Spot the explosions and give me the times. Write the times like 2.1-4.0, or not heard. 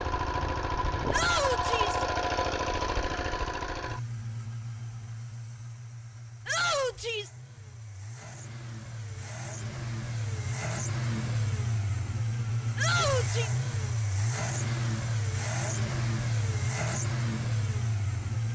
not heard.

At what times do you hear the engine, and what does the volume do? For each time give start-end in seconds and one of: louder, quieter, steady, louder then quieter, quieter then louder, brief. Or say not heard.
0.0-18.4 quieter then louder.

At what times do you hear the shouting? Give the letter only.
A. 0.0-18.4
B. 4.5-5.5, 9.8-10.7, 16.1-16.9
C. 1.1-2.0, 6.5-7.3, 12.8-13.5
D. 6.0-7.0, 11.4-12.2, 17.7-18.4
C.